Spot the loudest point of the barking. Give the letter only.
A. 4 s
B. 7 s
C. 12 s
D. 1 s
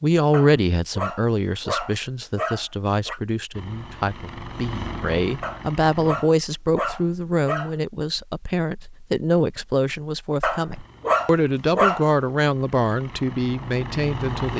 C.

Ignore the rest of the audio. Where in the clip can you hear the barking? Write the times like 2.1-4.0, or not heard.
0.3-3.2, 5.4-7.8, 10.4-12.1.